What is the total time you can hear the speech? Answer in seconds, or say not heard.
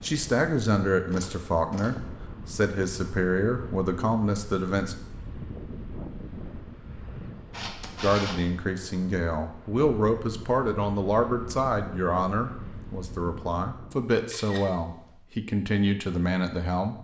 14 s.